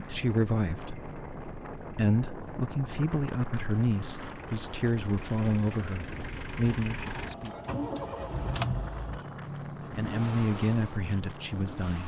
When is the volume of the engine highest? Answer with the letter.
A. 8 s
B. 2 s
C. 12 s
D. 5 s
A.